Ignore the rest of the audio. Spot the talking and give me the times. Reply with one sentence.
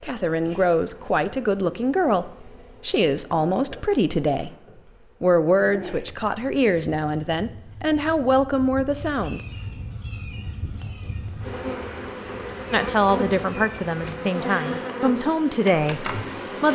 You can hear the talking from 0.0 to 4.5 s, from 5.2 to 9.4 s and from 12.7 to 16.7 s.